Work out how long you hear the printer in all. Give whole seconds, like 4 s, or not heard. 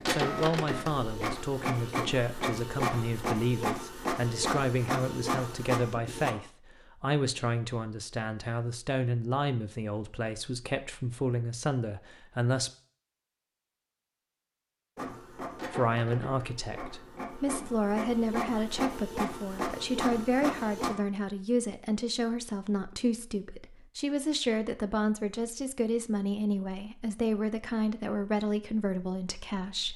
12 s.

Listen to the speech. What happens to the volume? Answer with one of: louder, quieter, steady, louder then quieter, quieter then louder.
steady.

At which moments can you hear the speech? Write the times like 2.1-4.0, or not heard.
0.1-12.7, 15.7-29.9.